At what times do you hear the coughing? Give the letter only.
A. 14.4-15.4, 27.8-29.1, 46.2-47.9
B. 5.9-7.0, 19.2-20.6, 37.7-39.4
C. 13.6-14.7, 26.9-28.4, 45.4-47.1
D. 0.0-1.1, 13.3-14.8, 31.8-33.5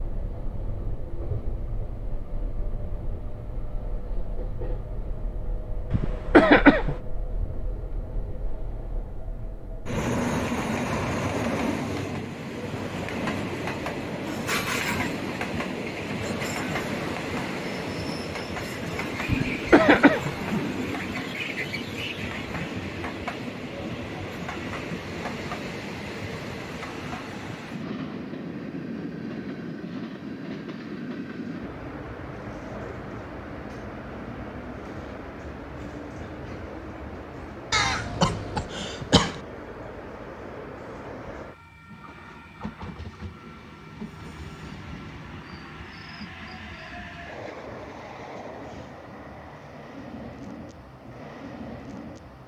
B.